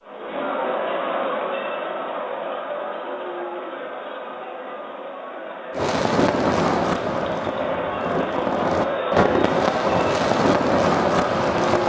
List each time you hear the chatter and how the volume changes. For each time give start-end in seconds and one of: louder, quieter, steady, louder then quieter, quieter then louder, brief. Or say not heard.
0.0-11.8 quieter then louder.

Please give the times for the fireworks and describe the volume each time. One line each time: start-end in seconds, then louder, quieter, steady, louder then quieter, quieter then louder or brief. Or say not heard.
5.7-11.8 quieter then louder.